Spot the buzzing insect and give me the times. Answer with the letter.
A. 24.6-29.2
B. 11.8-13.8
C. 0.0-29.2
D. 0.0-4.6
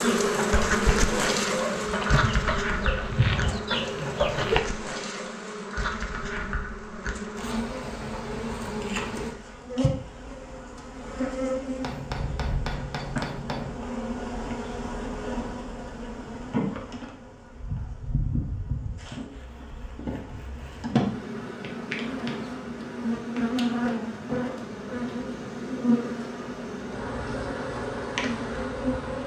C.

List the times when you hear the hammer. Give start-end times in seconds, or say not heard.
11.8-13.8.